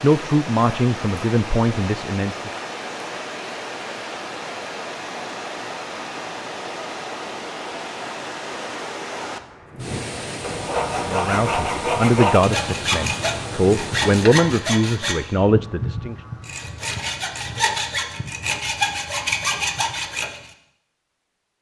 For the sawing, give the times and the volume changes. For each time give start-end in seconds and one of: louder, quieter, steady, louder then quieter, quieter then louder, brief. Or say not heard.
9.7-20.5 steady.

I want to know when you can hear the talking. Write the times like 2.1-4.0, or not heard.
0.0-2.5, 11.0-16.1.